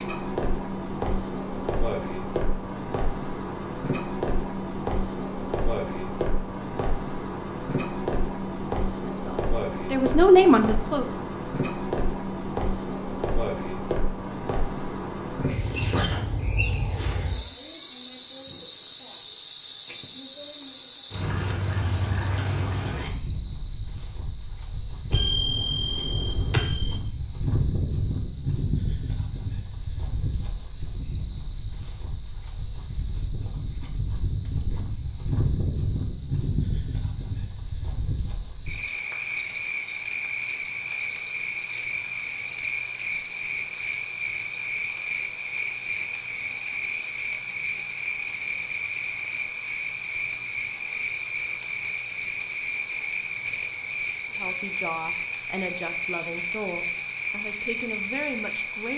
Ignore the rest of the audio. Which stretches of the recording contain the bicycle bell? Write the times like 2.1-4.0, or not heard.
25.1-27.0.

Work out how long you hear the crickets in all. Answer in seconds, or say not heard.
59 s.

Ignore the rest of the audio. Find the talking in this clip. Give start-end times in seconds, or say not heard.
9.0-11.2, 54.3-58.9.